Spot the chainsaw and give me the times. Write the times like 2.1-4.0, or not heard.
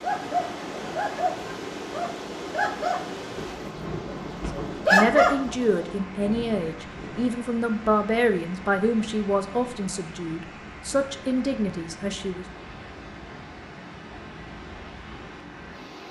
not heard.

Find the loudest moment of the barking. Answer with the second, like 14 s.
5 s.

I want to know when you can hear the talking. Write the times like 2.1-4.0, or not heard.
4.9-12.4.